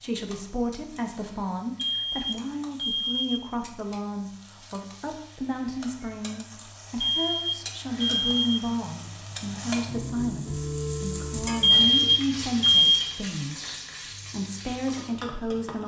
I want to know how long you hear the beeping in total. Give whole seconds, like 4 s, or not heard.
5 s.